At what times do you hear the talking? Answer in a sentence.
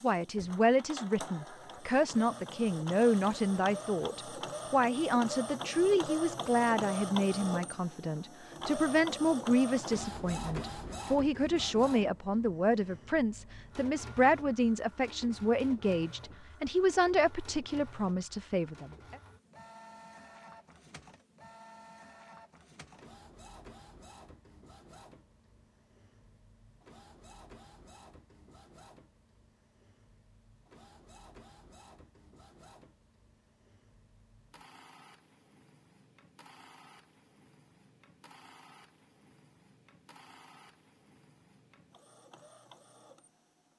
The talking can be heard from 0.0 to 19.1 s.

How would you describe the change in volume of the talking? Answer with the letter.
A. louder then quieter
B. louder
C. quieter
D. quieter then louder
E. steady
E.